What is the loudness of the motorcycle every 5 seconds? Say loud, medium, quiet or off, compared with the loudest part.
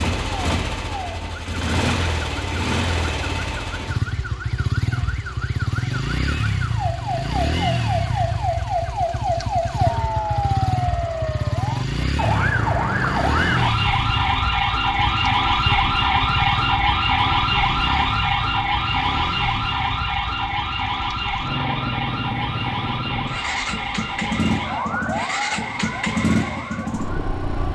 loud, loud, loud, medium, loud, loud.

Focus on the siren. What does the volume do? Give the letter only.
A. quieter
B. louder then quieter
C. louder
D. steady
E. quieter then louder
B.